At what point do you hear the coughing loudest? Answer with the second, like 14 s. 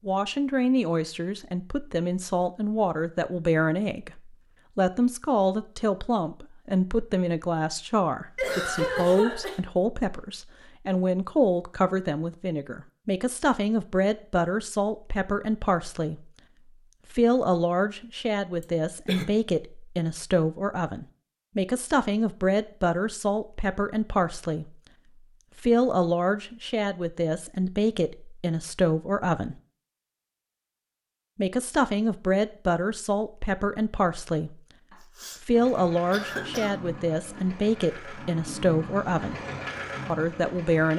9 s.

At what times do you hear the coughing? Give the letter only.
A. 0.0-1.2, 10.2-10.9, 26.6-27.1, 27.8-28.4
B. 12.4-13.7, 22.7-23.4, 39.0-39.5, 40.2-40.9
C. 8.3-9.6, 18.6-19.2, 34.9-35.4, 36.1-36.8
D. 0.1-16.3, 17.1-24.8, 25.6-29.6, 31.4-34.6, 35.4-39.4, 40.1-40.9
C.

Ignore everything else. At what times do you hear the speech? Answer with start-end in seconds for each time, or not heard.
0.1-16.3, 17.1-24.8, 25.6-29.6, 31.4-34.6, 35.4-39.4, 40.1-40.9.